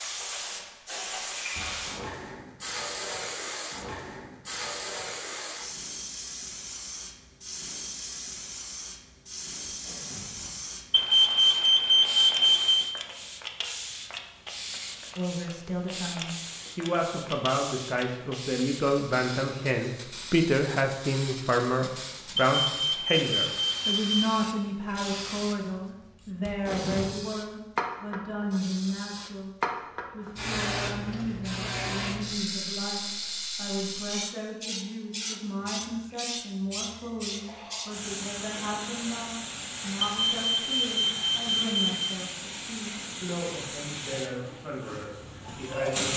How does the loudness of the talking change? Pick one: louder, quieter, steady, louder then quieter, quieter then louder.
quieter.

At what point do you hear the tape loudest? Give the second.
27 s.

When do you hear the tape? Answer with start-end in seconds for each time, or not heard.
9.7-10.6, 26.4-27.1.